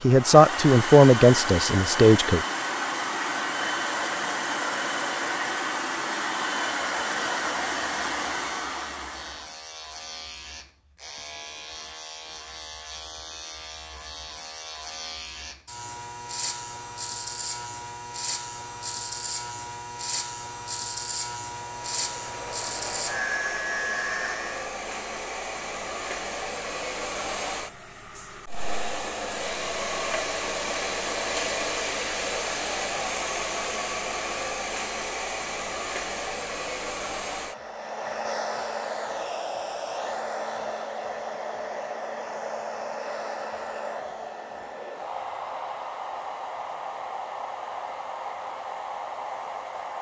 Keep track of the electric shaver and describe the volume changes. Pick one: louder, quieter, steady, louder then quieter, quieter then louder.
louder.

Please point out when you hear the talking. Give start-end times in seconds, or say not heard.
0.0-2.4.